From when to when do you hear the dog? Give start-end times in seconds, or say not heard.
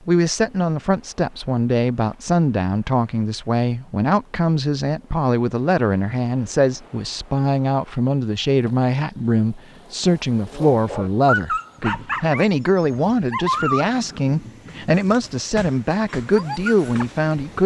10.5-17.2.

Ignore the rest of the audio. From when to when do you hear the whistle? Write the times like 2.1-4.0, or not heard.
not heard.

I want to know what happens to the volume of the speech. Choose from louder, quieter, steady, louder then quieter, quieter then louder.
steady.